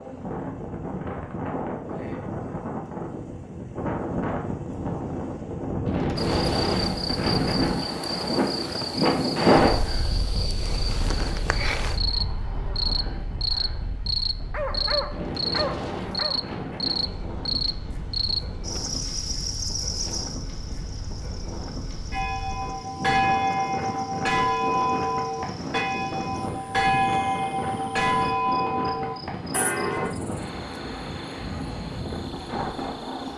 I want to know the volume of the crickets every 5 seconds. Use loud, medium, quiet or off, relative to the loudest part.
off, loud, loud, loud, quiet, quiet, quiet.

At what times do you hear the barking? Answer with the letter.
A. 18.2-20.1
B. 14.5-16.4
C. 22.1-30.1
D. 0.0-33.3
B.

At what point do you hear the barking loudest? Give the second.
15 s.